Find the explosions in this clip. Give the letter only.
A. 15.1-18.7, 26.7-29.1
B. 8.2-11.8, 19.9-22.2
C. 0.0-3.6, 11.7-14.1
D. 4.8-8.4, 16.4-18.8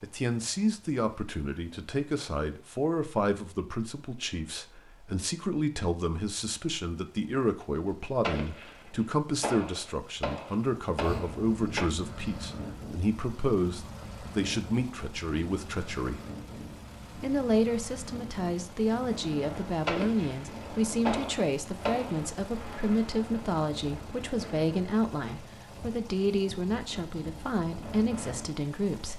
B.